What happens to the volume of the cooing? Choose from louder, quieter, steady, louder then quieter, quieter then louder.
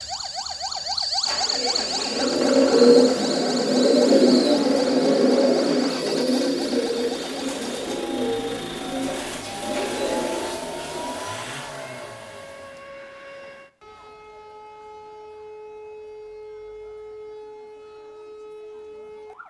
quieter.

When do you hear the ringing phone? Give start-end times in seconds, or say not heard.
not heard.